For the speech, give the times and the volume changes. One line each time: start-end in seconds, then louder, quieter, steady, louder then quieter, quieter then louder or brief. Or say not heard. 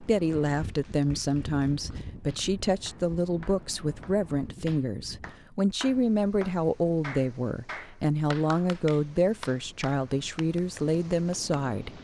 0.0-11.9 steady.